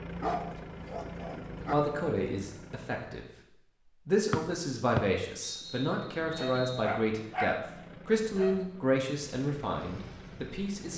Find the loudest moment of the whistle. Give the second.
5 s.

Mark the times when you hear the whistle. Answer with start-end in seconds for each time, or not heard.
4.3-6.8.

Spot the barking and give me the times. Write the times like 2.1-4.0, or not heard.
0.1-1.8, 6.3-7.7, 8.3-8.8.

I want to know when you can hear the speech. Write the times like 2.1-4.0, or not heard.
1.7-3.2, 4.0-10.9.